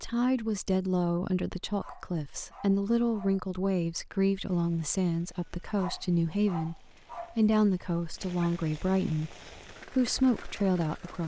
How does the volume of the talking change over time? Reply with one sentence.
The volume of the talking stays about the same.